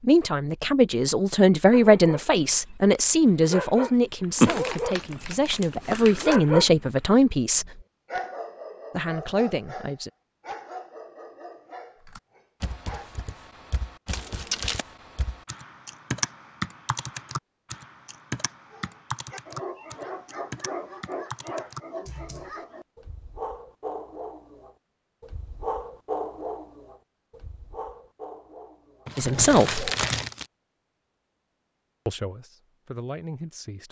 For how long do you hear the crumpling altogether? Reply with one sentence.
You can hear the crumpling for 4 seconds altogether.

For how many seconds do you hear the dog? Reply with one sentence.
You can hear the dog for 23 seconds altogether.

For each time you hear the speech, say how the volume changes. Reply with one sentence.
The speech can be heard from 0.0 to 7.8 s, getting quieter then louder; briefly from 8.9 to 10.1 s; briefly from 29.1 to 29.9 s; and briefly from 32.0 to 33.8 s.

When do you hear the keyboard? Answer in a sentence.
You can hear the keyboard from 12.1 to 22.6 s.